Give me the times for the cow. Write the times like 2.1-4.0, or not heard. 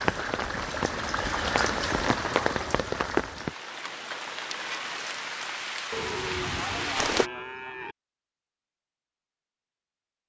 5.9-8.0.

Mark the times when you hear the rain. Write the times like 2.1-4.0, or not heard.
0.0-7.3.